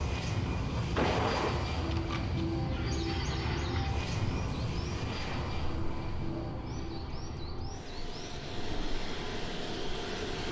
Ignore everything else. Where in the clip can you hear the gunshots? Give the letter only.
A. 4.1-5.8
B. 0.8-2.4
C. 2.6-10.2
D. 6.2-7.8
B.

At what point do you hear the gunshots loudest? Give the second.
1 s.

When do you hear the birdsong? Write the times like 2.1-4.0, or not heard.
2.6-10.2.